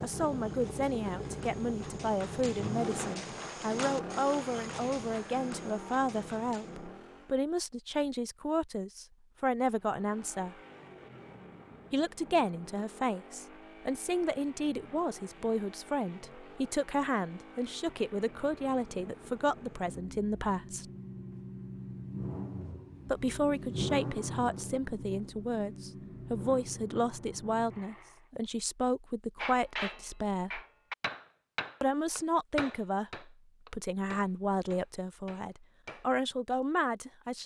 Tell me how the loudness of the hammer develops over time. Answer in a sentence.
The volume of the hammer goes down.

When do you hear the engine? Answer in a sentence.
You can hear the engine from 0.0 to 7.5 s and from 9.7 to 28.3 s.